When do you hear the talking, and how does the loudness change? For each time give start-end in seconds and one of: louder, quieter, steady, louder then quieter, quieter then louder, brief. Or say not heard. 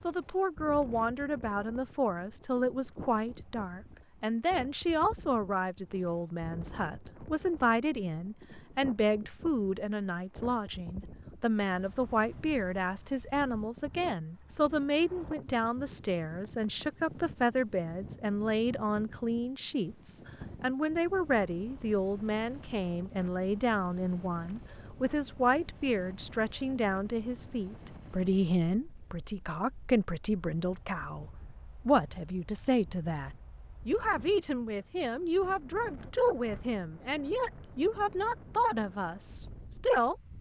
0.0-40.3 steady.